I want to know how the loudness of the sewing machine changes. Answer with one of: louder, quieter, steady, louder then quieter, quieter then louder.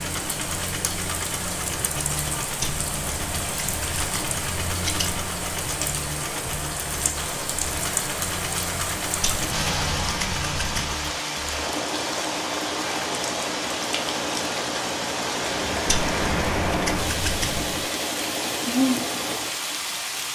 steady.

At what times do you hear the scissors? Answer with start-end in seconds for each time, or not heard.
2.6-5.2, 9.2-10.9, 15.8-17.9.